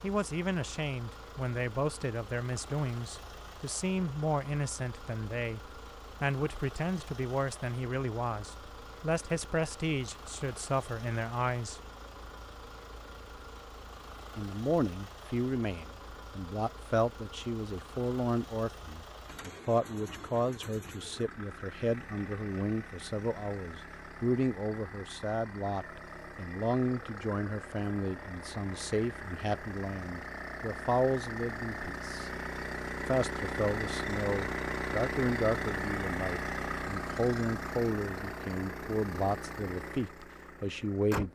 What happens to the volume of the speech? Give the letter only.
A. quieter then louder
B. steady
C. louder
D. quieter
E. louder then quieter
B.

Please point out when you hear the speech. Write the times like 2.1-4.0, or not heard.
0.0-11.8, 14.3-32.3, 33.0-41.3.